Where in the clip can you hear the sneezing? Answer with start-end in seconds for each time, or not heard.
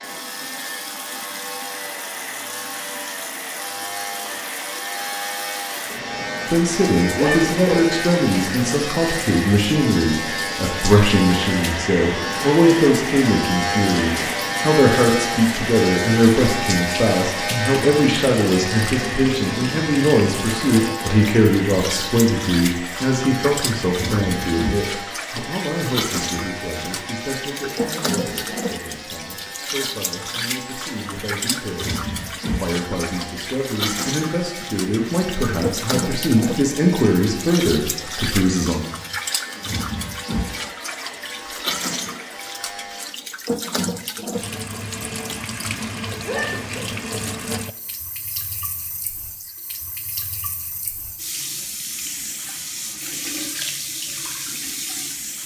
7.2-7.8, 46.2-46.9.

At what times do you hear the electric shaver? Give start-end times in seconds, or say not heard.
0.0-43.1.